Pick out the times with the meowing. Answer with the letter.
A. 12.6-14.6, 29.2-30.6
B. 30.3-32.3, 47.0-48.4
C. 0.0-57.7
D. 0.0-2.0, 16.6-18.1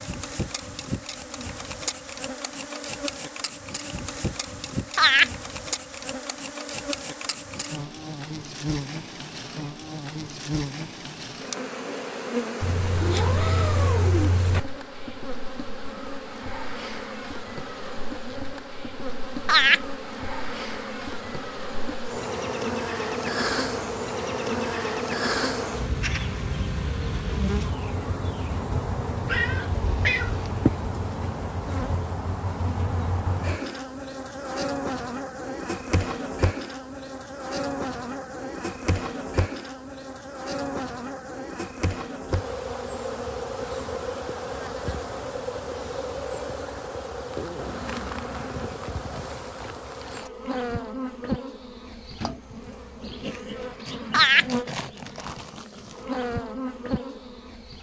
A.